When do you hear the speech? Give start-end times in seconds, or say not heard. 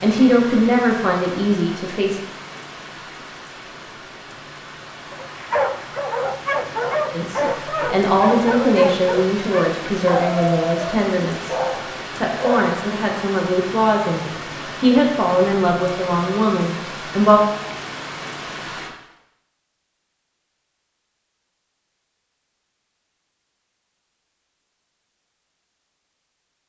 0.0-2.2, 7.1-11.6, 12.2-17.4.